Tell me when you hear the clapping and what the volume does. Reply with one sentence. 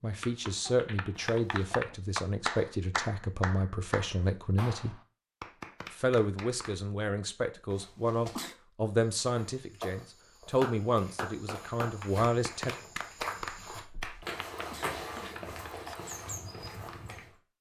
You can hear the clapping from 0.2 to 7.0 s, getting louder then quieter; and from 10.6 to 17.2 s, getting quieter.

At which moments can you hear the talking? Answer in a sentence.
You can hear the talking from 0.0 to 5.0 s and from 5.9 to 12.8 s.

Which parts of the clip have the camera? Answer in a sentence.
The camera can't be heard in this clip.